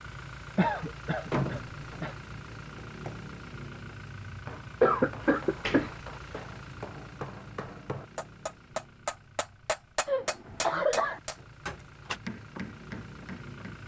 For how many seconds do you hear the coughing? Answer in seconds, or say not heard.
4 s.